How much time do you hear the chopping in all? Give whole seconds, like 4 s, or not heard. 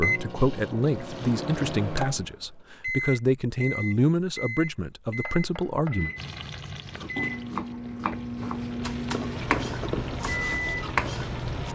6 s.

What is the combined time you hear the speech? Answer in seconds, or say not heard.
6 s.